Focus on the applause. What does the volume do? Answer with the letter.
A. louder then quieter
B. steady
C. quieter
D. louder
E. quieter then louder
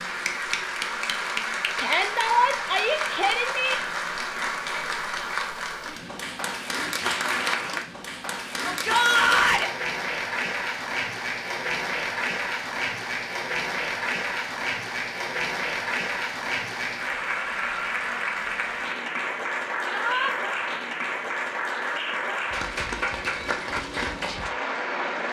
B.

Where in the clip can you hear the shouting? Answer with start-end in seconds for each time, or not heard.
1.8-3.8, 8.7-9.7, 19.9-20.4.